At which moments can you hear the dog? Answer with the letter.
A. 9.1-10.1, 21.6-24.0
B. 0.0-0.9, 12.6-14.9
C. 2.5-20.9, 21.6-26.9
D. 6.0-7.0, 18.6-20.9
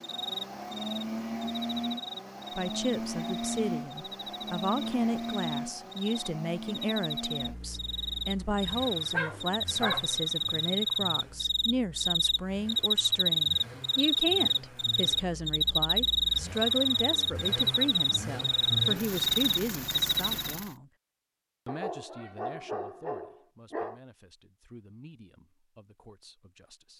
A.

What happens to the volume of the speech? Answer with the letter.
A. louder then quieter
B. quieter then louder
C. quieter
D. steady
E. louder
C.